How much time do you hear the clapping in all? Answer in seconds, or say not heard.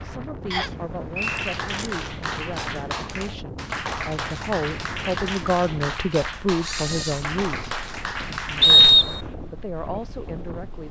8 s.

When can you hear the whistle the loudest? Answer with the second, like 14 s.
9 s.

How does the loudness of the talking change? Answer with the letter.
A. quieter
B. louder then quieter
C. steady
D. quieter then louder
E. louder
B.